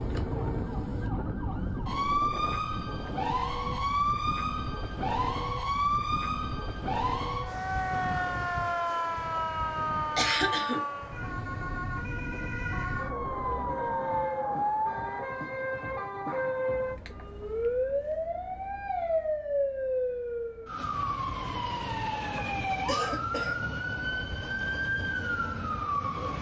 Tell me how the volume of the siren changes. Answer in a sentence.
The loudness of the siren stays about the same.